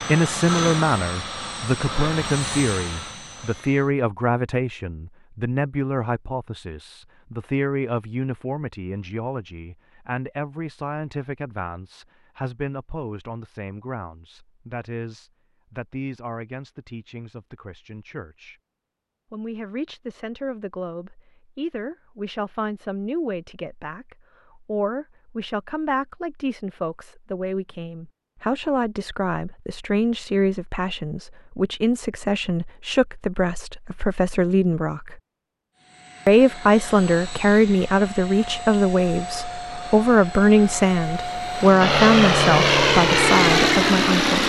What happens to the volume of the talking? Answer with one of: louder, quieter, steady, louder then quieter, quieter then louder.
quieter then louder.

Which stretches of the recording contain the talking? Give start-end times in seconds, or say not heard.
0.1-18.6, 19.3-35.1, 36.2-44.4.